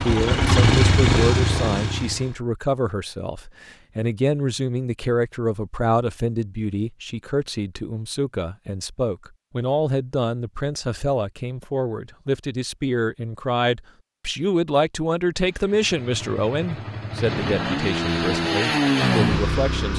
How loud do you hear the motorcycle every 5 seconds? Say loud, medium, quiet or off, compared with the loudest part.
loud, off, off, loud.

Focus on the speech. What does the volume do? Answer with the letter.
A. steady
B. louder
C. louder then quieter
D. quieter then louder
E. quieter
A.